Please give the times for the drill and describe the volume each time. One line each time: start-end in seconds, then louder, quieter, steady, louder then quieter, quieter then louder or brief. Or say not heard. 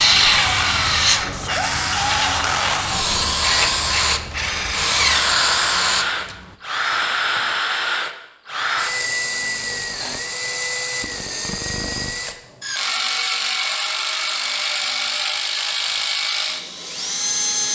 0.0-17.7 steady.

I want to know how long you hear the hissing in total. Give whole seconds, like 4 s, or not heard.
6 s.